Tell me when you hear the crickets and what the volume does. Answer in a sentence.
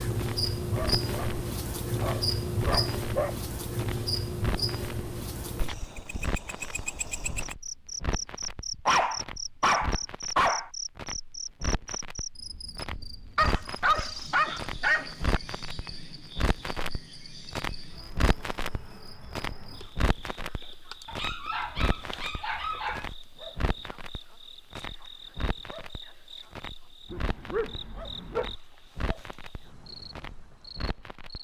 The crickets can be heard from 0.0 to 31.3 s, getting quieter.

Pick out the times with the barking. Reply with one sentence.
You can hear the barking from 0.7 to 1.4 s, from 2.0 to 3.4 s, from 8.8 to 10.7 s, from 13.3 to 15.4 s, from 21.1 to 23.1 s and from 27.1 to 28.6 s.